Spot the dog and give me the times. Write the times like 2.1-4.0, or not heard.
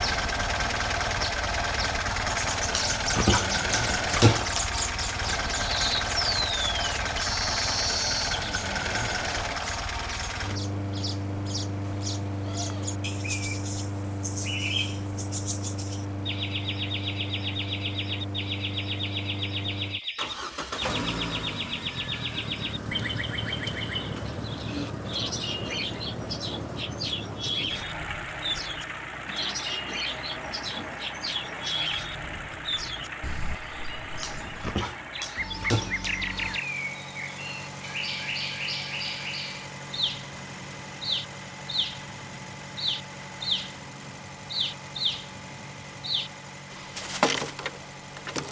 2.8-4.7, 34.2-36.2.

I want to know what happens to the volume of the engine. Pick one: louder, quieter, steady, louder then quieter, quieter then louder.
quieter.